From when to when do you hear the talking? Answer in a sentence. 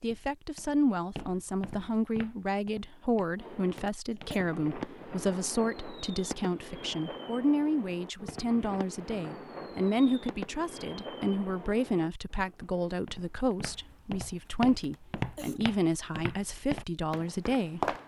You can hear the talking from 0.0 to 17.9 s.